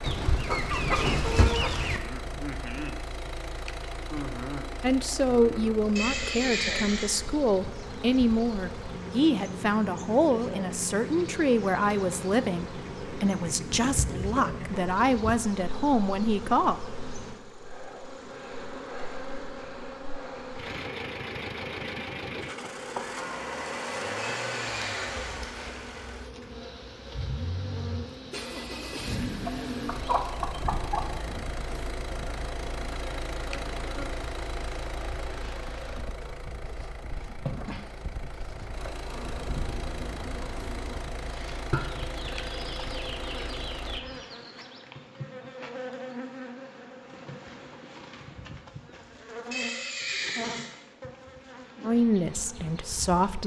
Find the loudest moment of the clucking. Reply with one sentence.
The loudest moment of the clucking is at 1 second.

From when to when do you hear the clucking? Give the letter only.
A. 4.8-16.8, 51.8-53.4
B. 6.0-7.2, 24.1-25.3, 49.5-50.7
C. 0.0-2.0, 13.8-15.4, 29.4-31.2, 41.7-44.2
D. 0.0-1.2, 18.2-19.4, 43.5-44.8
C.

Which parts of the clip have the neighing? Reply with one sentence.
The neighing can be heard from 6.0 to 7.2 s, from 24.1 to 25.3 s and from 49.5 to 50.7 s.